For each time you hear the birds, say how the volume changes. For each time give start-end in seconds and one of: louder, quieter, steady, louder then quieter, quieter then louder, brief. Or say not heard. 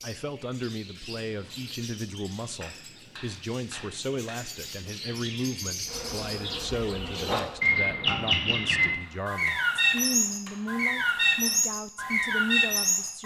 0.0-13.2 louder.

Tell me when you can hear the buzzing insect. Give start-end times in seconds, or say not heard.
5.8-8.2.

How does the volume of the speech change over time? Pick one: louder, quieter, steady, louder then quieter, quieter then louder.
steady.